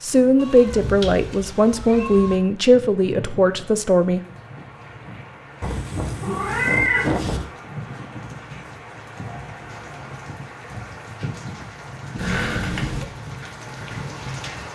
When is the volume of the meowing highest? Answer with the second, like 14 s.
7 s.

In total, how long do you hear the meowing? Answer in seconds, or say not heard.
5 s.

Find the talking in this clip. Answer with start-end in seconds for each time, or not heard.
0.0-4.2.